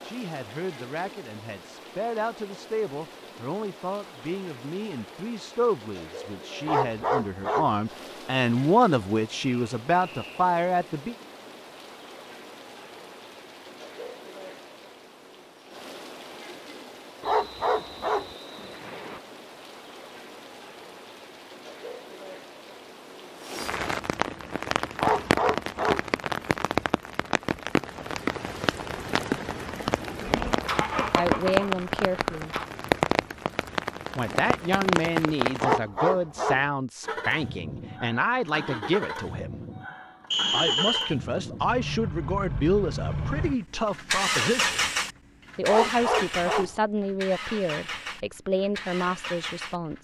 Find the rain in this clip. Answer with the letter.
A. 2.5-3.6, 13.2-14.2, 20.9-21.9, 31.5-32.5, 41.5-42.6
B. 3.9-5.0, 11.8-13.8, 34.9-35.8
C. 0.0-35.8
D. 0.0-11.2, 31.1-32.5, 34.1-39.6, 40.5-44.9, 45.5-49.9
C.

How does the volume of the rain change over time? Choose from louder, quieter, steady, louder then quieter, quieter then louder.
louder.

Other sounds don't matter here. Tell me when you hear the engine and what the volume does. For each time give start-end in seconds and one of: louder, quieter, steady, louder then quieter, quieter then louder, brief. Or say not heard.
30.2-32.6 brief
37.0-49.9 louder then quieter.